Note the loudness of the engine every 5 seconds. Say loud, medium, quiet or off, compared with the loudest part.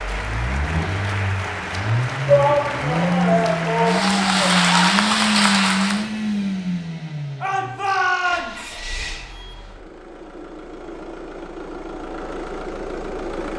loud, loud, medium.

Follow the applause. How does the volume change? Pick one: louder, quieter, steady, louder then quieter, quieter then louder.
louder.